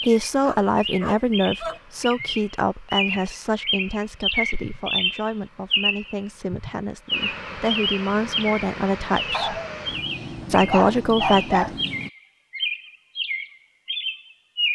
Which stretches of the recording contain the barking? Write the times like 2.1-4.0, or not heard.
0.4-1.8, 9.3-11.8.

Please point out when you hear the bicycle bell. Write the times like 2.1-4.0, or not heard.
not heard.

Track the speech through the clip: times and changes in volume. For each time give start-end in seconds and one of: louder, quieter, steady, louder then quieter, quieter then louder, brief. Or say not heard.
0.0-9.6 quieter then louder
10.5-11.7 brief.